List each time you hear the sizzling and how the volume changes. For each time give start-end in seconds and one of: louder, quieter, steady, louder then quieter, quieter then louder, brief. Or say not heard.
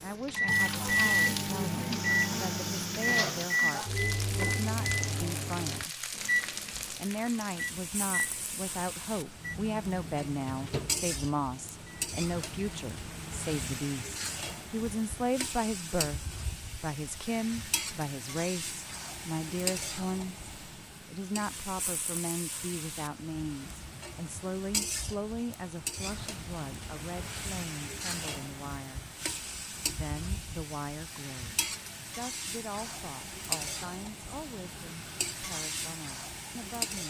0.0-37.0 steady.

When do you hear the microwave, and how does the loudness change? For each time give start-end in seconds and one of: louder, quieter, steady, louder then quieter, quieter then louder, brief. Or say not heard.
0.0-13.6 quieter.